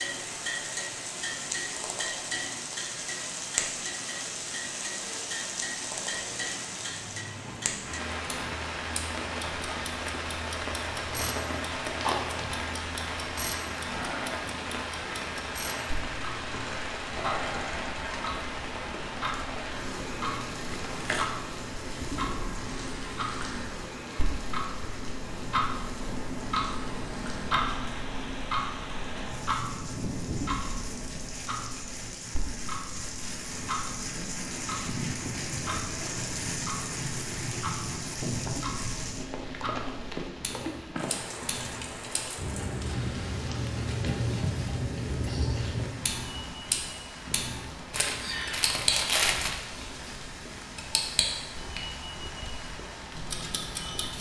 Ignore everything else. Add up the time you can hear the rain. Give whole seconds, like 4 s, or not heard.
54 s.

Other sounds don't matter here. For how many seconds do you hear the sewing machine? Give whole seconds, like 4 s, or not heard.
not heard.